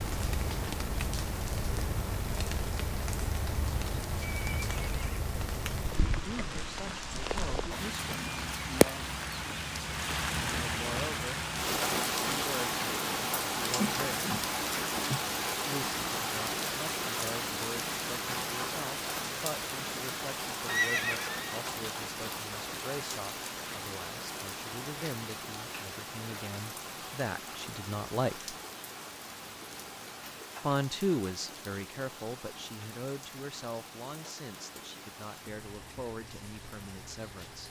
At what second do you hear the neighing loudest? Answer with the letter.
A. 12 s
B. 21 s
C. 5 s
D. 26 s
B.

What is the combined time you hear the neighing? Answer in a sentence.
You can hear the neighing for 2 seconds altogether.